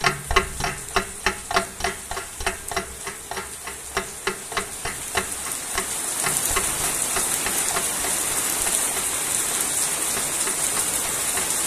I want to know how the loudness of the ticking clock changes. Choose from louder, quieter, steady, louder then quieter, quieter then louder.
quieter.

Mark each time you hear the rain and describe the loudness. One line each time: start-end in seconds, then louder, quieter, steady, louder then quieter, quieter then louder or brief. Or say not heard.
0.0-11.6 louder.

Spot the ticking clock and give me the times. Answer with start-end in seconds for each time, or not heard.
0.0-11.6.